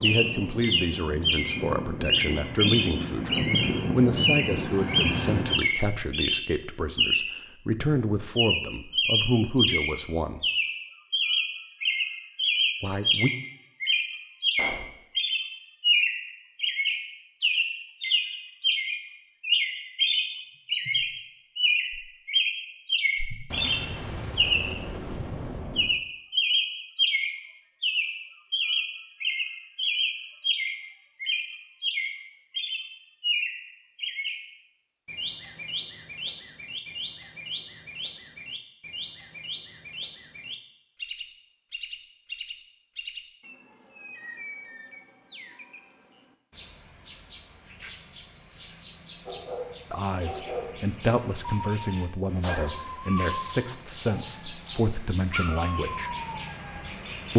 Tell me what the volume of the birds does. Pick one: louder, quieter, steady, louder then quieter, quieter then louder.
quieter.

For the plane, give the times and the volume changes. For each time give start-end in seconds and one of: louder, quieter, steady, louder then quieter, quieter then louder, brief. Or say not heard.
0.0-5.5 louder.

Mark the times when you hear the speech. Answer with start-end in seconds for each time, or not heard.
0.0-10.4, 12.8-13.3, 49.9-56.1.